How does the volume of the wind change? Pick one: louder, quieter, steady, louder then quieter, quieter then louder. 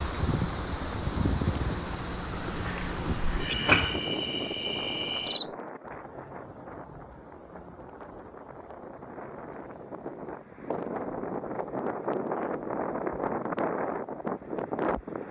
quieter then louder.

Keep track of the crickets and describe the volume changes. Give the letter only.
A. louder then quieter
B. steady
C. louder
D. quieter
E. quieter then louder
D.